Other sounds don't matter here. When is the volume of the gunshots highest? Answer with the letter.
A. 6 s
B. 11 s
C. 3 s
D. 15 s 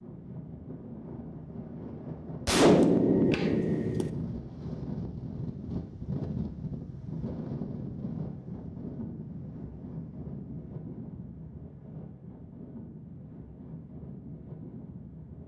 C.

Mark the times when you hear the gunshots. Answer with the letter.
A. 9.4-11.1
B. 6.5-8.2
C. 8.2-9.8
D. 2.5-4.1
D.